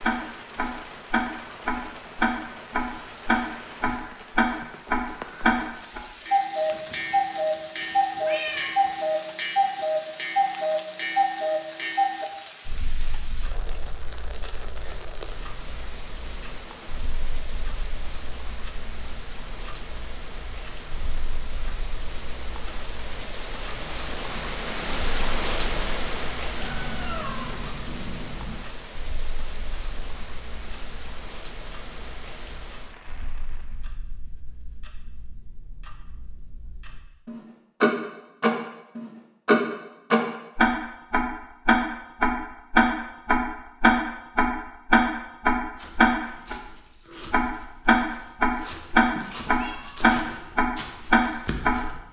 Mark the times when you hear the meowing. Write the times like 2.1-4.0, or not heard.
6.7-8.9, 26.6-28.6, 49.0-50.1.